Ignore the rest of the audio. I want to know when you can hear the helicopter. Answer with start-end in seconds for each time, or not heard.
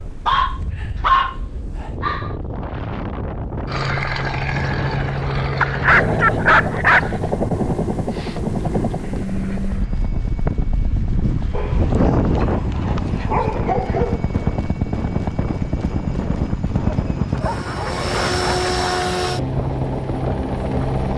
3.6-21.1.